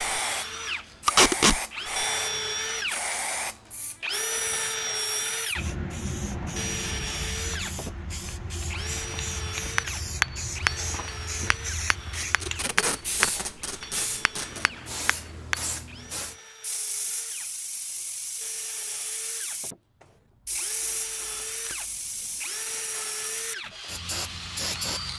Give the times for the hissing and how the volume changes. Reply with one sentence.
You can hear the hissing from 0.0 to 25.1 s, at a steady volume.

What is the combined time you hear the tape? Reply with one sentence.
The tape can be heard for 4 seconds in total.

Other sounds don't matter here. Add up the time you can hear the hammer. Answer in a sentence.
You can hear the hammer for 6 seconds altogether.